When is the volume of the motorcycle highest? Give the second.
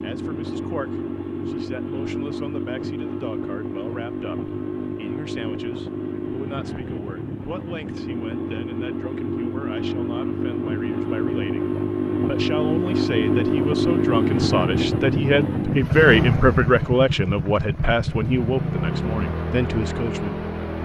14 s.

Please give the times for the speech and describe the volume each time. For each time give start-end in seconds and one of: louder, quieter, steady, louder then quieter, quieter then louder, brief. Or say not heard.
0.0-20.7 louder.